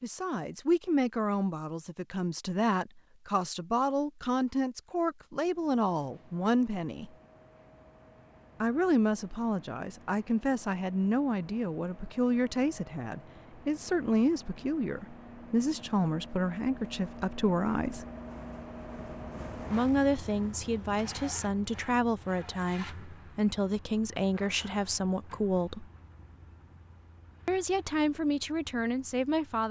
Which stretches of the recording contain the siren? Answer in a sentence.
The siren can't be heard in this clip.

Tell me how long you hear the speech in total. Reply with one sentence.
You can hear the speech for 25 seconds altogether.